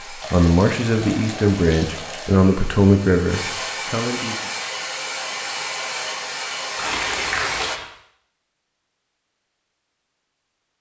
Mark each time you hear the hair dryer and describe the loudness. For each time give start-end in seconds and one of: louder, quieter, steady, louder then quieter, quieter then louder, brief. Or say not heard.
0.0-7.8 louder.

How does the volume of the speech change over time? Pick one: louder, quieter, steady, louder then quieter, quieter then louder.
quieter.